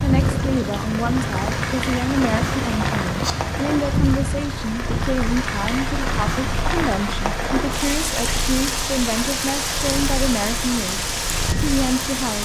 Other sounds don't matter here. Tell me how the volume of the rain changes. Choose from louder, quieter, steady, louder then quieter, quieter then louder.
steady.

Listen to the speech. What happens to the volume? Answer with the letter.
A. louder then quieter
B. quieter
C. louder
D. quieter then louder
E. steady
E.